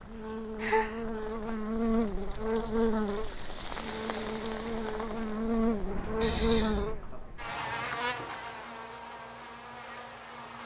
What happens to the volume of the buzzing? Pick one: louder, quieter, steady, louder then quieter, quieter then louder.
quieter.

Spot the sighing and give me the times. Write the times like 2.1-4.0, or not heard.
0.6-1.1, 6.2-7.0.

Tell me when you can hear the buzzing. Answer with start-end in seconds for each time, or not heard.
0.0-10.6.